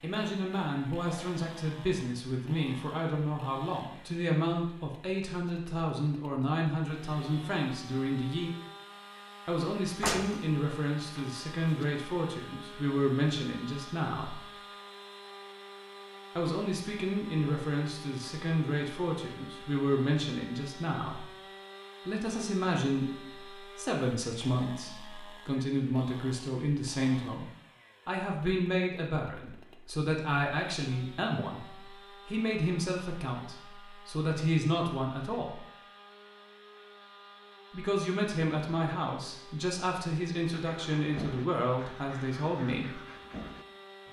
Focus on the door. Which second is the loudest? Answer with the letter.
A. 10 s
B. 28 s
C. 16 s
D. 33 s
A.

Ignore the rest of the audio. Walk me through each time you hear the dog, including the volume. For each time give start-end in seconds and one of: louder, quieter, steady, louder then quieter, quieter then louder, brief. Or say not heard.
not heard.